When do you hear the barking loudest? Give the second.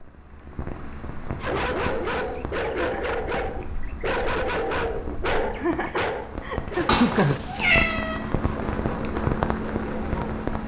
7 s.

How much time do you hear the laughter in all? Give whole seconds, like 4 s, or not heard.
2 s.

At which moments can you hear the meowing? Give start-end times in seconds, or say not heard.
6.8-8.2.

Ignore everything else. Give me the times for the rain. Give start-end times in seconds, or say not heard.
0.0-10.6.